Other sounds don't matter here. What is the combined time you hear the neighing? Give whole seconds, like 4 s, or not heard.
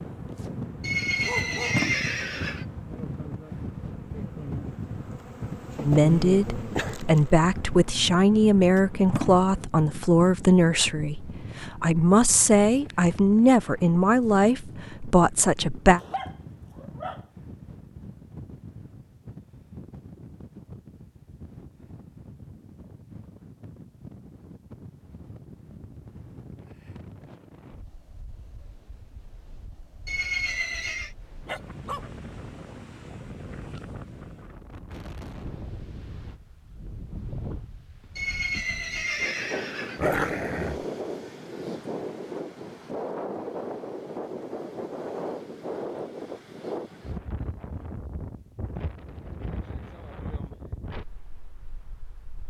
5 s.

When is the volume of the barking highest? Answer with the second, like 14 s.
40 s.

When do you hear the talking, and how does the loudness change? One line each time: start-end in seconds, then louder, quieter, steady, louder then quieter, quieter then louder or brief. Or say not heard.
5.8-16.0 steady.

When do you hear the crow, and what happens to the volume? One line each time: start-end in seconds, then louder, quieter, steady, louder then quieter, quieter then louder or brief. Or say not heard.
not heard.